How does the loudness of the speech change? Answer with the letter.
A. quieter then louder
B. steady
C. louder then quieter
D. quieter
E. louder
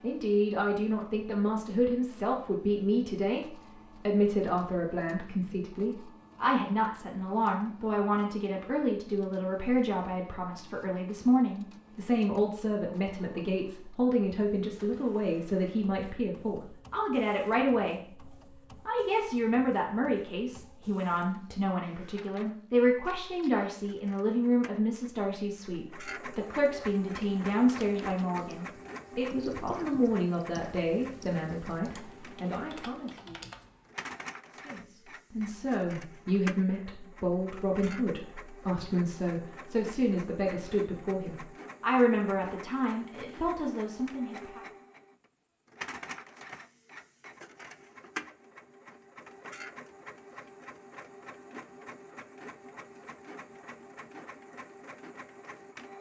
B.